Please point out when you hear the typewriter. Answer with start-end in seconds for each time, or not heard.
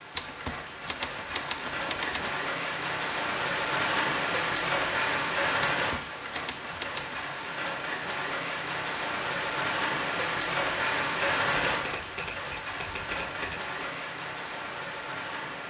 0.1-2.3, 5.6-7.2, 11.2-13.7.